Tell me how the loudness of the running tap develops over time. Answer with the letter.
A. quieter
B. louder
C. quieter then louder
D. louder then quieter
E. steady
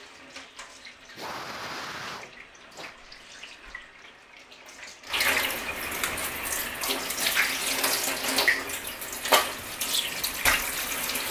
B.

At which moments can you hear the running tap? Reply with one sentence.
You can hear the running tap from 0.0 to 11.2 s.